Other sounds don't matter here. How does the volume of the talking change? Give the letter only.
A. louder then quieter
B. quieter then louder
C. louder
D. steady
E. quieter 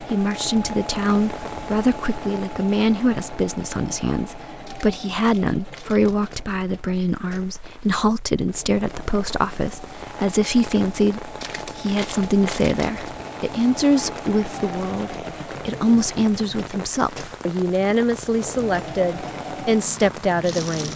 D.